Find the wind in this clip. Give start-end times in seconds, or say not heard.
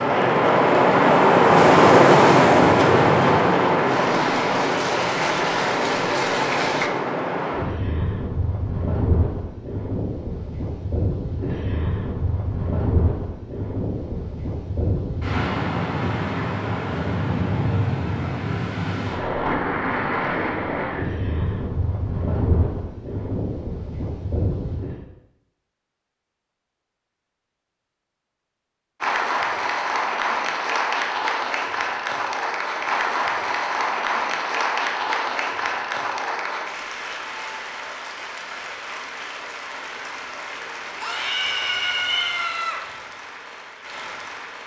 0.0-25.0.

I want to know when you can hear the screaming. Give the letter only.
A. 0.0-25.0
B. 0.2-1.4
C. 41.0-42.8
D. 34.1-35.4
C.